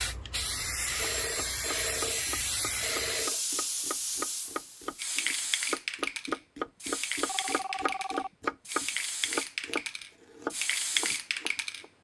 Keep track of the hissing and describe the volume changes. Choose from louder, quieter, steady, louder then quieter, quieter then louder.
steady.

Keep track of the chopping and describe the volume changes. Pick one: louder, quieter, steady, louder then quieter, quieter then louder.
louder then quieter.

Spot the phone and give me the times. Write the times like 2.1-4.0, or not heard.
0.9-3.5, 6.8-8.5.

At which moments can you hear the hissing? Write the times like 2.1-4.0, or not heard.
0.0-11.8.